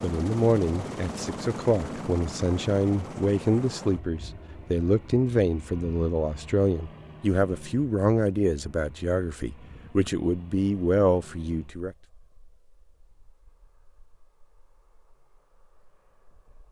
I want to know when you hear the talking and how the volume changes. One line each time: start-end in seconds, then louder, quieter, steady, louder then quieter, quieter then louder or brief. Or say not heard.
0.0-11.9 steady.